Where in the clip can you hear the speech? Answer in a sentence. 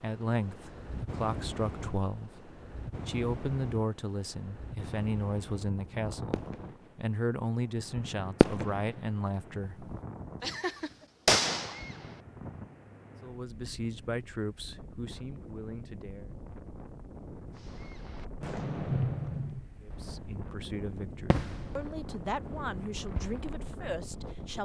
The speech can be heard from 0.0 to 9.8 s, from 13.2 to 16.3 s and from 19.8 to 24.6 s.